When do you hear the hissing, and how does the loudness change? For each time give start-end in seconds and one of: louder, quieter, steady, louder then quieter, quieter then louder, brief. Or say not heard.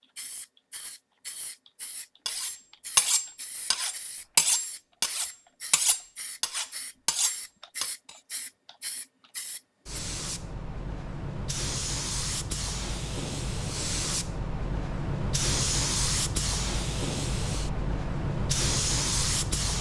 0.0-19.7 louder.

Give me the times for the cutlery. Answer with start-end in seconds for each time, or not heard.
2.2-8.2.